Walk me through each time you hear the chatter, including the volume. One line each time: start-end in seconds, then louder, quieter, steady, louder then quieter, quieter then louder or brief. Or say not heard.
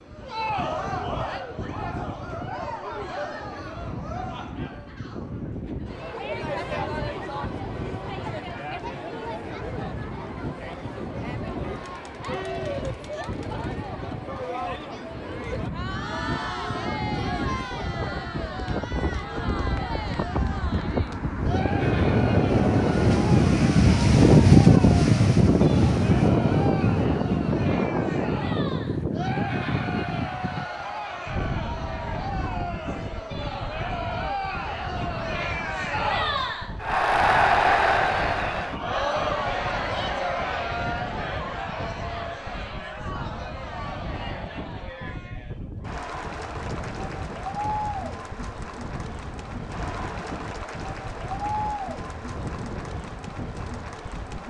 0.0-54.4 louder then quieter.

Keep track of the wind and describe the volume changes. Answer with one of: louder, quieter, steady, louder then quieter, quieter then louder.
louder then quieter.